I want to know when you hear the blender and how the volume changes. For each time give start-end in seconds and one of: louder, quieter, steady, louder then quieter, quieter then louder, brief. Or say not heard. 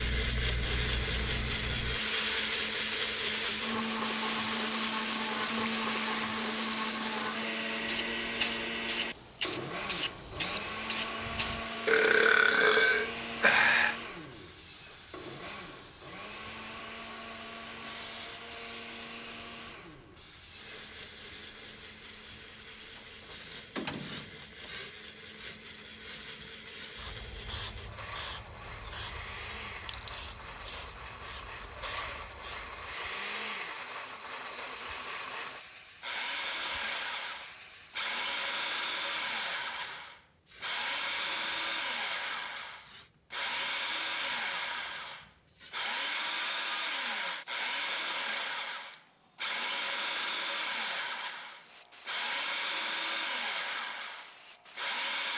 0.0-55.3 quieter then louder.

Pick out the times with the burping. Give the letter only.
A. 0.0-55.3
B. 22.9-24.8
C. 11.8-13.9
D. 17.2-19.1
C.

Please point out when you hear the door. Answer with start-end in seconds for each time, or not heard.
22.9-24.8.